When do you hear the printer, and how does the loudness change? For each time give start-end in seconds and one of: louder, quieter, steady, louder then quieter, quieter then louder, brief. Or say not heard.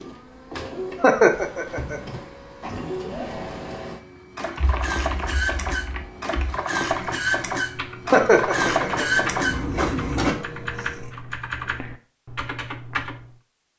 0.0-10.4 louder.